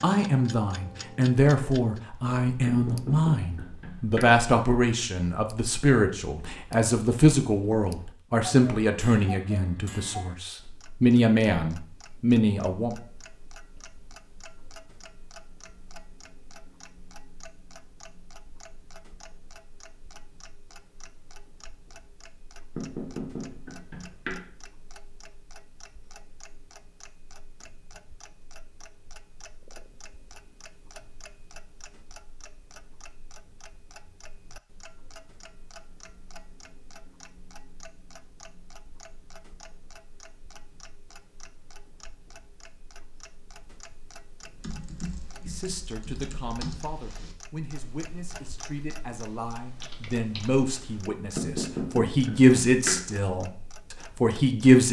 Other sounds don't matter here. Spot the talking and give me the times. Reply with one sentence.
You can hear the talking from 0.0 to 12.9 s and from 45.4 to 54.8 s.